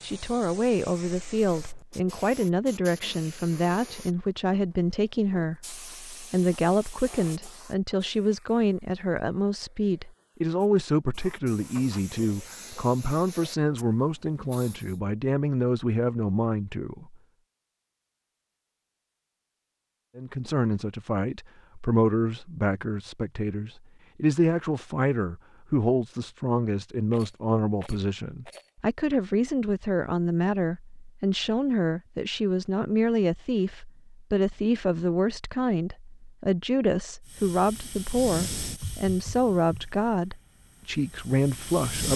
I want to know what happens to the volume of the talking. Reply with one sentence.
The volume of the talking stays about the same.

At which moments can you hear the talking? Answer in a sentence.
You can hear the talking from 0.0 to 17.1 s and from 20.1 to 42.1 s.